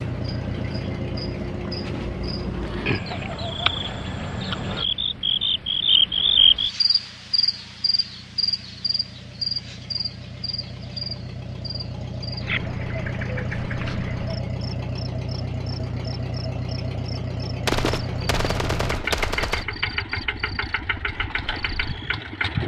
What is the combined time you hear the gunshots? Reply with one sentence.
The gunshots can be heard for 2 seconds in total.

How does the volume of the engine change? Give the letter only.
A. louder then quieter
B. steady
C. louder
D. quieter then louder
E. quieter
D.